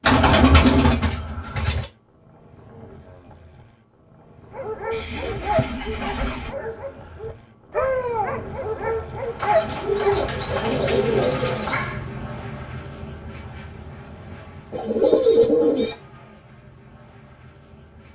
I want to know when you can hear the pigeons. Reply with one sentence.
You can hear the pigeons from 0.0 to 1.9 s, from 4.9 to 6.5 s, from 9.3 to 11.9 s and from 14.7 to 15.9 s.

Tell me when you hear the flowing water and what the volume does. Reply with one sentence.
You can't hear the flowing water here.